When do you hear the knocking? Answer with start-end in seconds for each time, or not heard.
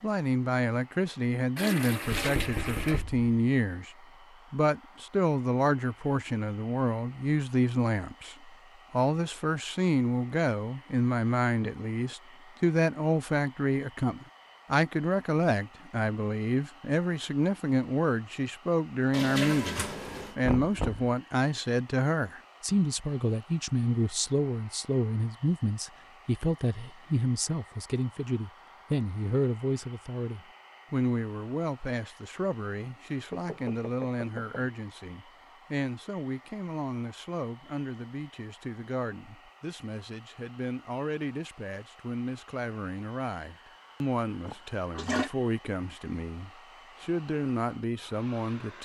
2.1-3.2, 20.4-21.1, 33.3-34.6.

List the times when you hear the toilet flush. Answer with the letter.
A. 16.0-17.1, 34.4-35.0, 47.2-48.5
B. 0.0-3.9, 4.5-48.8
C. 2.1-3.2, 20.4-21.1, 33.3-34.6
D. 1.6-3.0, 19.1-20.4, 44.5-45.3
D.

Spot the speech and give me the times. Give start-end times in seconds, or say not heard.
0.0-3.9, 4.5-48.8.